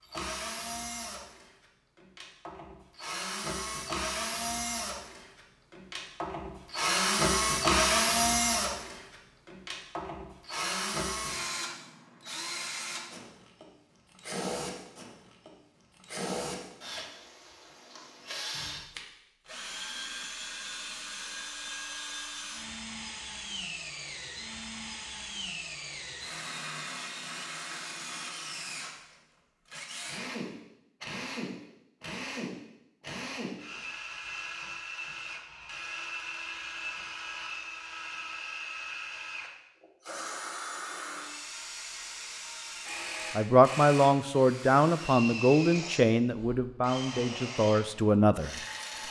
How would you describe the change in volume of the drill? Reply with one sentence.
The volume of the drill goes down.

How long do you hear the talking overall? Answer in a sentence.
You can hear the talking for 5 seconds altogether.